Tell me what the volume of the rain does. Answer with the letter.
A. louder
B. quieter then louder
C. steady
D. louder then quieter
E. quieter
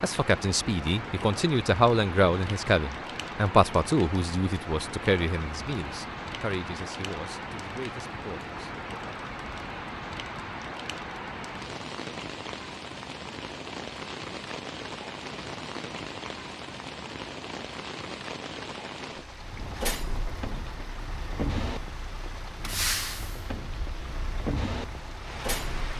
C.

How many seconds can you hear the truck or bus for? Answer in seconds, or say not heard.
7 s.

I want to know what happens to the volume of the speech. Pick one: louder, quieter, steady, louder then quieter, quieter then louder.
quieter.